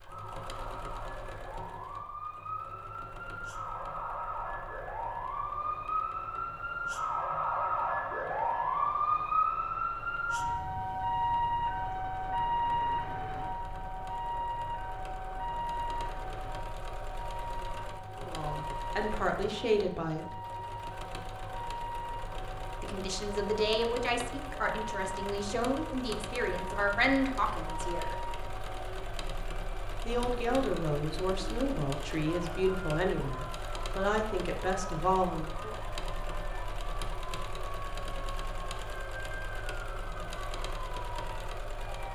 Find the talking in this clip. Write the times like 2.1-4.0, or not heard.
18.1-20.4, 22.8-28.2, 30.1-35.8.